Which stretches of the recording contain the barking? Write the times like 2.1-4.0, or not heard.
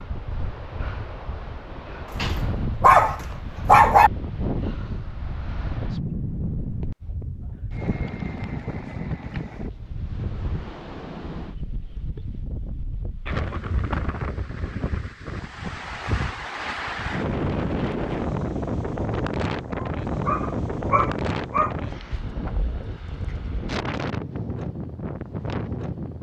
2.1-4.1, 19.8-21.8.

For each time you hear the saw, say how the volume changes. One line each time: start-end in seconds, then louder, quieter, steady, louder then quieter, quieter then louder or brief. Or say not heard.
not heard.